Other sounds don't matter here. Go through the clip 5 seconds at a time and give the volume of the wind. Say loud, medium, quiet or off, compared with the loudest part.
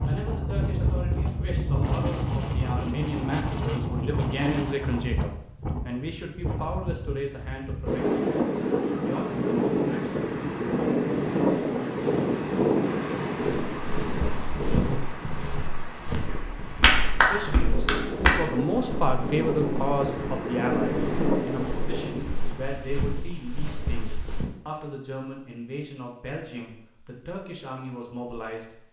loud, loud, loud, medium, loud, off.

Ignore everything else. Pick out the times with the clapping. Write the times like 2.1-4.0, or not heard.
16.2-18.3.